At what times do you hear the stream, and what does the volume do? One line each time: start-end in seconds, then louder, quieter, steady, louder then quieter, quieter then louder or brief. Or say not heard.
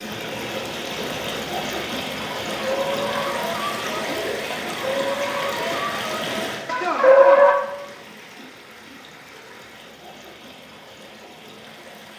0.0-12.1 quieter.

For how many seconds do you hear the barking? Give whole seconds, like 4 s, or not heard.
5 s.